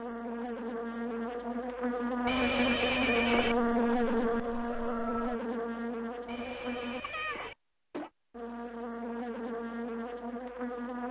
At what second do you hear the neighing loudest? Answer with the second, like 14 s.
3 s.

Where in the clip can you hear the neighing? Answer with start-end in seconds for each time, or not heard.
2.2-3.5, 6.2-7.5.